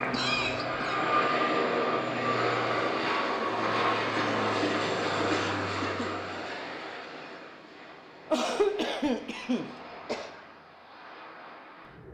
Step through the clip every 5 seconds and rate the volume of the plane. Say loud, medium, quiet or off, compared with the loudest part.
loud, medium, quiet.